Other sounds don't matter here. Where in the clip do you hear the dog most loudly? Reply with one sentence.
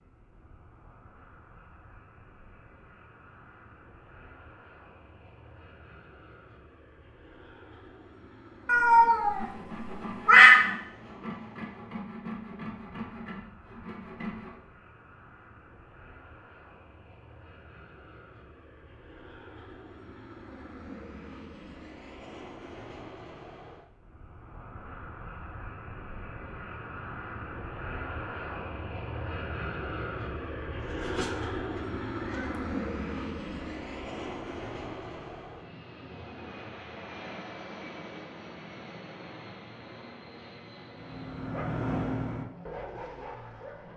The volume of the dog peaks at 42 seconds.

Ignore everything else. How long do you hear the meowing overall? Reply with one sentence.
You can hear the meowing for 4 seconds altogether.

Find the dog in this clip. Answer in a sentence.
You can hear the dog from 41.0 to 43.9 s.